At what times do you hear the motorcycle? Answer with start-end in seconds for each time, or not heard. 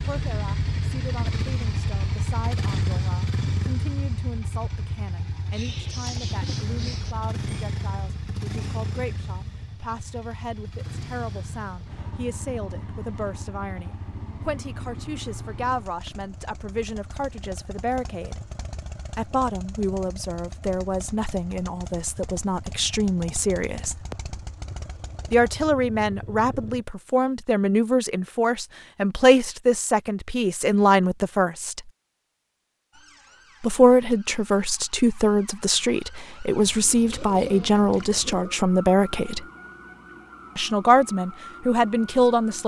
0.0-26.9.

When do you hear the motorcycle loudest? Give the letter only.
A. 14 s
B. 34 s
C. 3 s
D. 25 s
C.